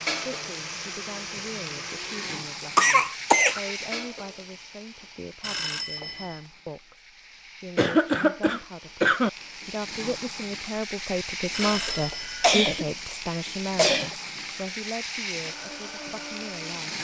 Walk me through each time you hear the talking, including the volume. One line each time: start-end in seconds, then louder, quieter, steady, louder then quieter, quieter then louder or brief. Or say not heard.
0.3-16.9 louder then quieter.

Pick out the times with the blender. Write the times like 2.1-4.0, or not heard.
0.0-2.4, 15.4-16.9.